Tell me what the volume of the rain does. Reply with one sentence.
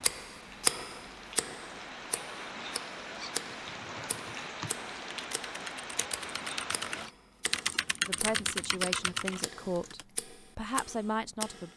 The volume of the rain goes up.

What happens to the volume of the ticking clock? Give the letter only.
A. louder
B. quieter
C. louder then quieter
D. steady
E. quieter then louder
B.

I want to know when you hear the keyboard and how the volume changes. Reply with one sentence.
The keyboard can be heard from 3.6 to 10.1 s, getting louder.